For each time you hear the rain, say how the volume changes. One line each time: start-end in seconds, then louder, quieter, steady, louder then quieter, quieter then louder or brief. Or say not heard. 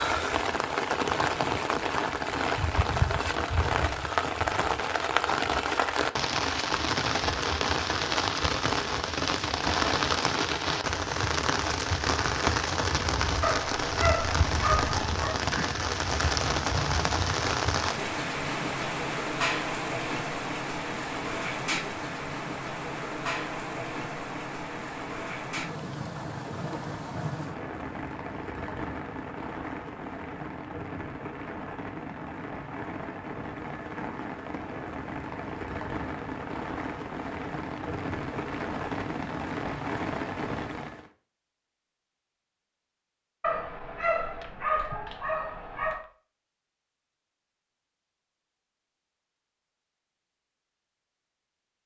0.0-41.1 quieter.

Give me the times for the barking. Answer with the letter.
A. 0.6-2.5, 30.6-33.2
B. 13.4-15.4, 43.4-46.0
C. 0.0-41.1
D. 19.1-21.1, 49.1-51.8
B.